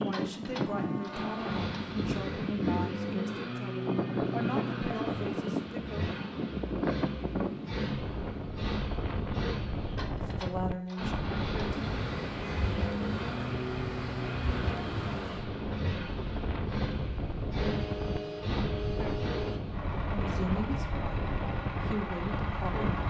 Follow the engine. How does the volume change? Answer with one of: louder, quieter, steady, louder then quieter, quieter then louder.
steady.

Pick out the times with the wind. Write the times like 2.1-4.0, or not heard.
0.0-23.0.